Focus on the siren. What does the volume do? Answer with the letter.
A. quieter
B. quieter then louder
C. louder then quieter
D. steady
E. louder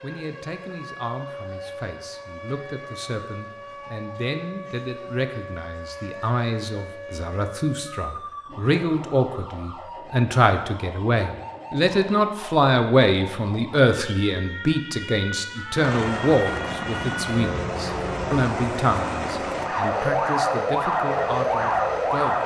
E.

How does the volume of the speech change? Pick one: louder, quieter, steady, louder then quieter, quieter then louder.
louder then quieter.